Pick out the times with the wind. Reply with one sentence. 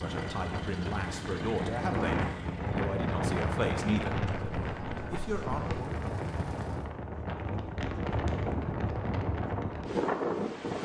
You can hear the wind from 0.0 to 10.8 s.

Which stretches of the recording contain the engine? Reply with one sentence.
You can hear the engine from 0.0 to 7.0 s.